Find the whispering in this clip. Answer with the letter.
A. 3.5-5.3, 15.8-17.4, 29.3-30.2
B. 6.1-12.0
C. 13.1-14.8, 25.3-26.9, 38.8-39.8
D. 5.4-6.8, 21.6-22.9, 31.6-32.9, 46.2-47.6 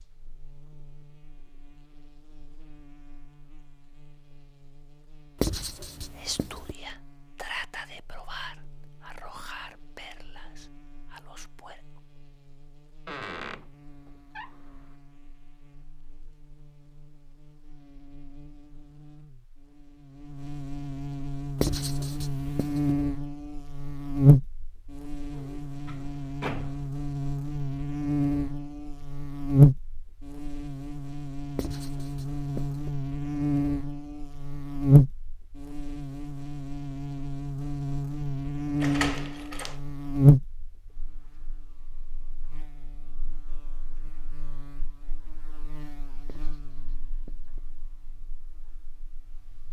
B.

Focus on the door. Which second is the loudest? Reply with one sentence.
The volume of the door peaks at 39 seconds.